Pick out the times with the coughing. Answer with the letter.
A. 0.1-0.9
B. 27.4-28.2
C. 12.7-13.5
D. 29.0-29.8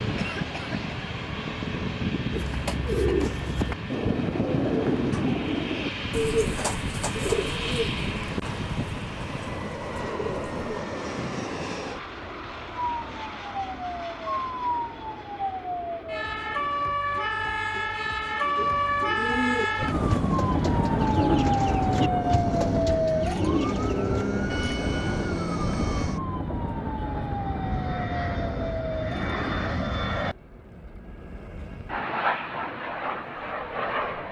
A.